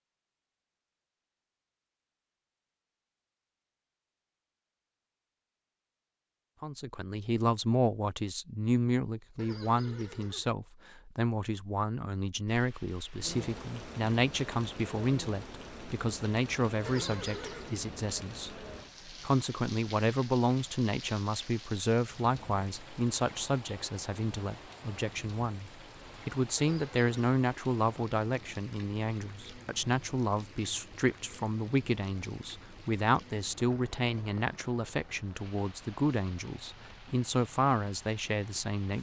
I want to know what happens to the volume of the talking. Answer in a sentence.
The loudness of the talking stays about the same.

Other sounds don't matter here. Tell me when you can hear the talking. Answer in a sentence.
You can hear the talking from 6.6 to 38.9 s.